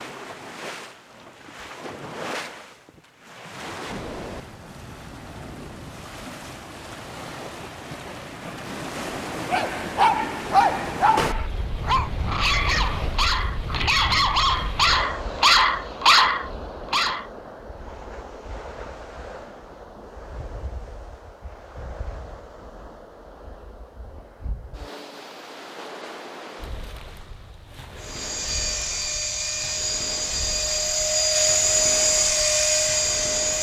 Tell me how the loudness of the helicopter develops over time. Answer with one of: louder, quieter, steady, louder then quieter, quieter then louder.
louder.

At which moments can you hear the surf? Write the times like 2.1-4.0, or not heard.
0.0-33.5.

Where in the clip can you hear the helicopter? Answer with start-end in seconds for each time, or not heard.
27.9-33.5.